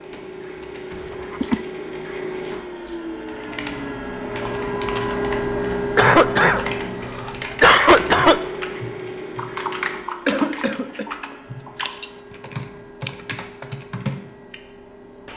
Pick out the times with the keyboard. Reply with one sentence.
The keyboard can be heard from 3.2 to 14.6 s.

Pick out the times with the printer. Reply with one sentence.
You can hear the printer from 0.0 to 15.3 s.